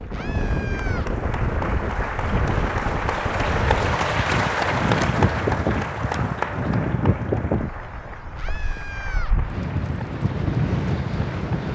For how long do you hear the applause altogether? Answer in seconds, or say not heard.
12 s.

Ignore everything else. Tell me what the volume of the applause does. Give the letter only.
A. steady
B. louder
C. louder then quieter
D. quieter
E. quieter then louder
C.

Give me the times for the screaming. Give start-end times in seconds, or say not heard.
0.1-1.1, 8.3-9.3.